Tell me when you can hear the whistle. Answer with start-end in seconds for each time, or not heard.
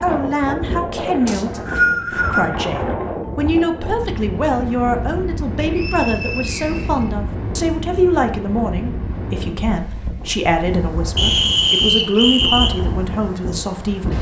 1.2-2.5, 5.5-7.1, 11.2-12.7.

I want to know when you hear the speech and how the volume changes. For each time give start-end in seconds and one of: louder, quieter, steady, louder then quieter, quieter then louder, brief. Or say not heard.
0.0-14.1 steady.